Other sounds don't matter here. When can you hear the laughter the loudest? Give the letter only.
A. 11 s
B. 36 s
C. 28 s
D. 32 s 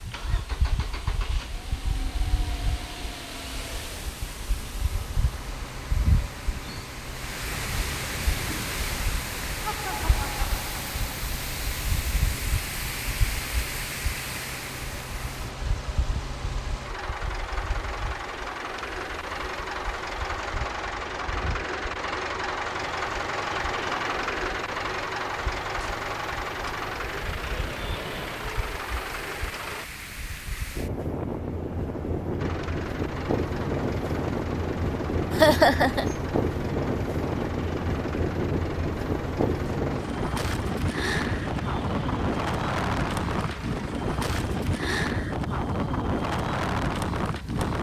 B.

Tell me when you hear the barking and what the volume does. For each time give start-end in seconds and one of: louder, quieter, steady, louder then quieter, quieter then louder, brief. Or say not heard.
not heard.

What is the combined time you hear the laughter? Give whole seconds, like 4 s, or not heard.
2 s.